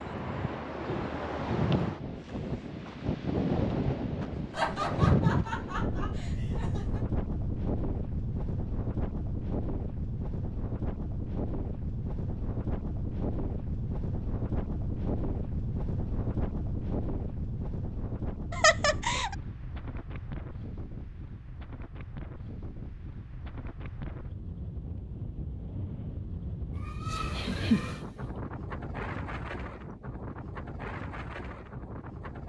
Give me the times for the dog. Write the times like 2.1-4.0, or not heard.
not heard.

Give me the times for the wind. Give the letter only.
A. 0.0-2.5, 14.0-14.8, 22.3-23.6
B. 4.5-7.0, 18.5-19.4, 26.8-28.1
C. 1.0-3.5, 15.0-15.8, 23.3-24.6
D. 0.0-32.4
D.